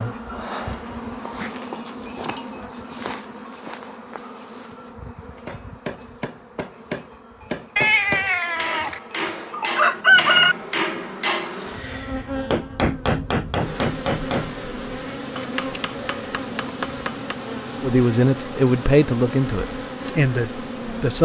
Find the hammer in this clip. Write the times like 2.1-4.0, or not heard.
5.5-11.7, 12.5-14.7, 15.3-17.4.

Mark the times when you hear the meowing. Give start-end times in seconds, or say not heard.
7.8-9.0.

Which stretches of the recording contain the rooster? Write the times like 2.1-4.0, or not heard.
9.5-10.6.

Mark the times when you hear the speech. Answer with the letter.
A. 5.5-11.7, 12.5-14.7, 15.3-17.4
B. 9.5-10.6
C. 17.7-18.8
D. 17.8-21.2
D.